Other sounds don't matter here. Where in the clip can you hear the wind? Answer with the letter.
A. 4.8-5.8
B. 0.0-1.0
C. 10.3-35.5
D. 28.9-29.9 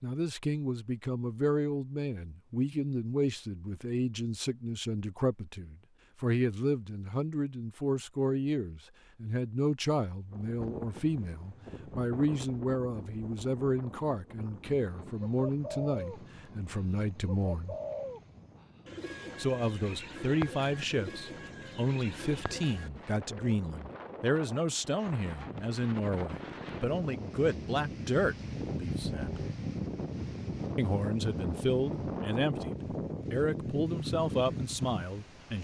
C.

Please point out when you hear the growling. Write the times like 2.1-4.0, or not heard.
28.9-29.9.